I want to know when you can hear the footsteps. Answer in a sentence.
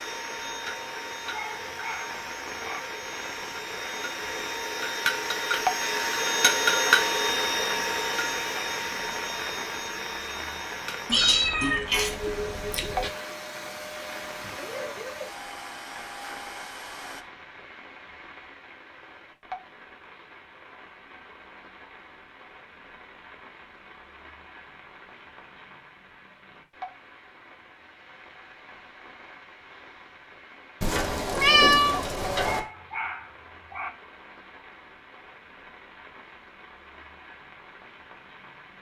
You can't hear the footsteps here.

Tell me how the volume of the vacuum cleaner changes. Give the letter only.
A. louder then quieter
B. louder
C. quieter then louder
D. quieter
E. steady
A.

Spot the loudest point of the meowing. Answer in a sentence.
The loudest moment of the meowing is at 32 seconds.